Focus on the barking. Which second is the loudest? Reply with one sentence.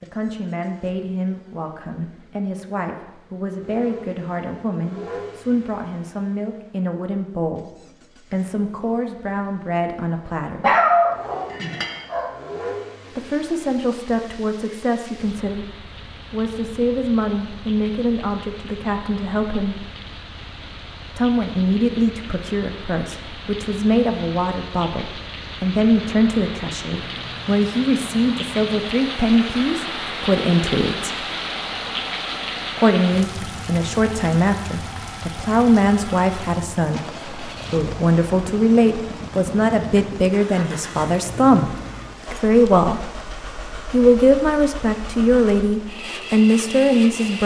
The volume of the barking peaks at 11 seconds.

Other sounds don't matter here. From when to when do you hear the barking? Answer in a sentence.
The barking can be heard from 10.6 to 12.3 s.